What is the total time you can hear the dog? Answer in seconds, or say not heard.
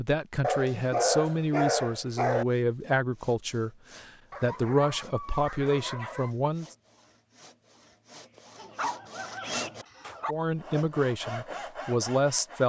6 s.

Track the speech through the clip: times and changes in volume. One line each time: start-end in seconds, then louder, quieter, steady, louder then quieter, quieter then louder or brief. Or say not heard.
0.0-6.8 steady
10.2-12.6 brief.